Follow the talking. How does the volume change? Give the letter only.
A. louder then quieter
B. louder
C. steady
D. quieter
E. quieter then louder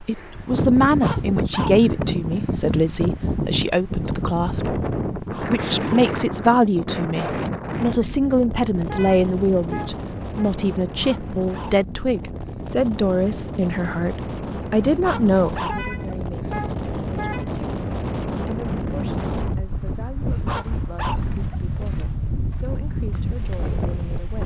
D.